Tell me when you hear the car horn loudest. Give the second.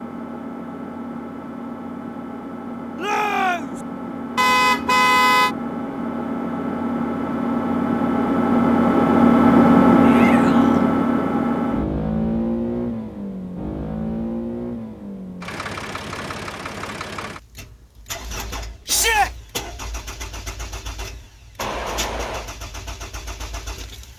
5 s.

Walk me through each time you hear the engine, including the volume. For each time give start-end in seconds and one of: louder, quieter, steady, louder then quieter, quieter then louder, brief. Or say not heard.
0.0-24.1 louder then quieter.